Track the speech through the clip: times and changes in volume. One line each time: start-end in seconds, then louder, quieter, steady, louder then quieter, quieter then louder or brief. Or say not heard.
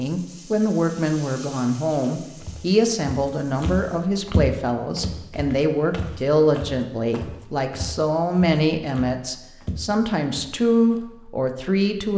0.0-12.1 steady.